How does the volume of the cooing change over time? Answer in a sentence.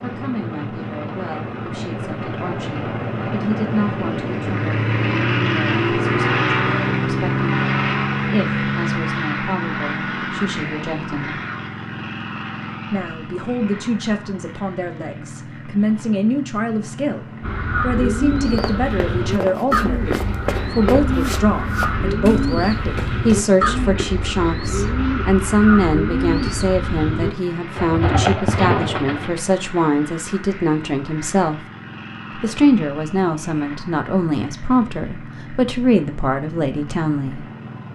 The volume of the cooing stays about the same.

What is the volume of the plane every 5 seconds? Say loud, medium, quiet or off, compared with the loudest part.
medium, loud, medium, quiet, quiet, quiet, quiet, quiet.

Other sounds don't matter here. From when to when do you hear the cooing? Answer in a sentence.
You can hear the cooing from 17.4 to 29.4 s.